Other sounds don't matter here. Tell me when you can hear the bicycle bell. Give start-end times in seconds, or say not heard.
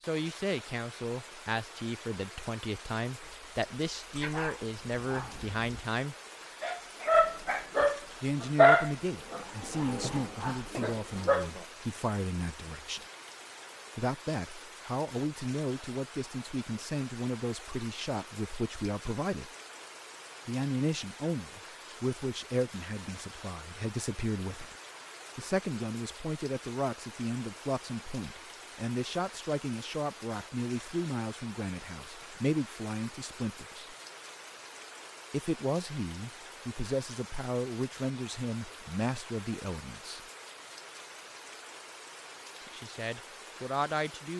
not heard.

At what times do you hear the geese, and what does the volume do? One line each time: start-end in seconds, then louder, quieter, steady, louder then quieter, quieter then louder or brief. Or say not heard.
not heard.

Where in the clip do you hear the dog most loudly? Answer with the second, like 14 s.
9 s.